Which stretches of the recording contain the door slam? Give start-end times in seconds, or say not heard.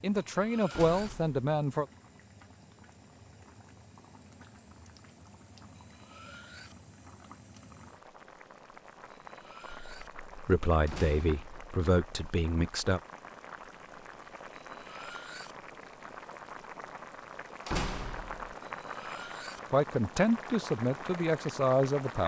0.7-1.4, 10.8-11.7, 17.6-18.6.